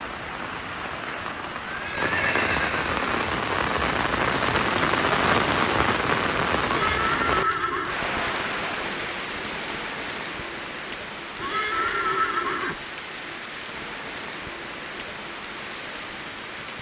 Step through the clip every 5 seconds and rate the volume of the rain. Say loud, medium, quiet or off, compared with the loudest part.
loud, loud, medium, medium.